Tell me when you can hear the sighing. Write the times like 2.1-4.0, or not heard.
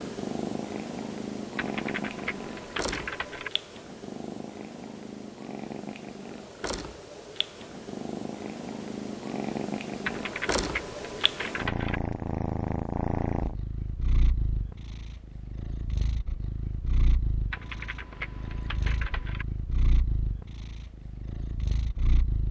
not heard.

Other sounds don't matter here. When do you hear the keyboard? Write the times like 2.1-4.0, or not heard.
1.6-3.5, 10.1-12.0, 17.5-19.4.